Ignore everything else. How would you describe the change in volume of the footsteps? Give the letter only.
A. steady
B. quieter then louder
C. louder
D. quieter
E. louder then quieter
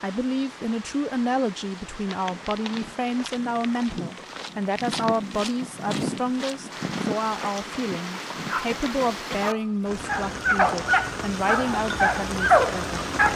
E.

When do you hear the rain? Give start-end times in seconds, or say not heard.
0.0-13.3.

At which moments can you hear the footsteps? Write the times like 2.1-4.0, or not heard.
2.0-8.7.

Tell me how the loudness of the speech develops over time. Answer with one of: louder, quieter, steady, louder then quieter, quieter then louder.
steady.